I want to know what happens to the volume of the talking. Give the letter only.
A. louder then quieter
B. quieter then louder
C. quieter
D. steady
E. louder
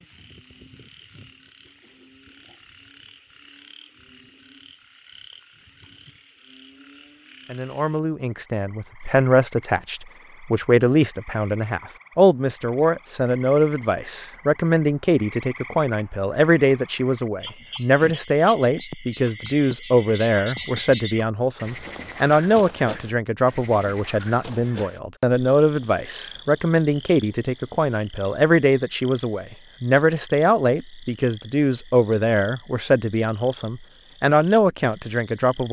D.